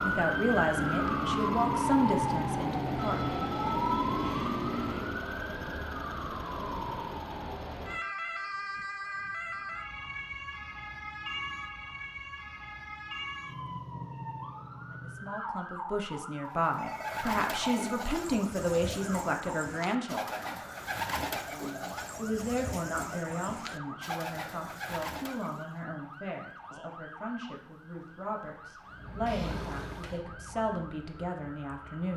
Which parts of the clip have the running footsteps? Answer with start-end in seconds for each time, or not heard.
not heard.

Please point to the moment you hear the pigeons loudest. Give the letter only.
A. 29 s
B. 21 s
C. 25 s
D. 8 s
B.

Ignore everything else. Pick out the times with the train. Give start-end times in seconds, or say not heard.
0.0-5.2, 28.8-32.0.